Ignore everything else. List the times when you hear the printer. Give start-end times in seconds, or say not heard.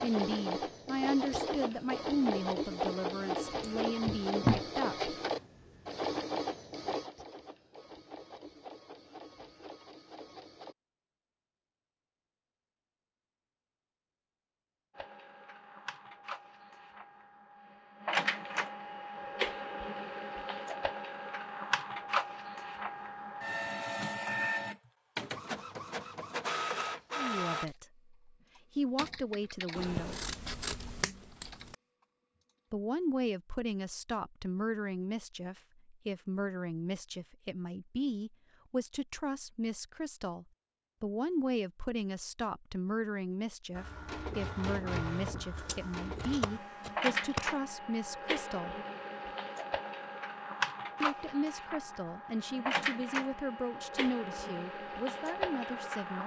0.0-10.8, 14.9-27.6, 43.8-56.2.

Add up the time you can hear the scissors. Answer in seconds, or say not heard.
5 s.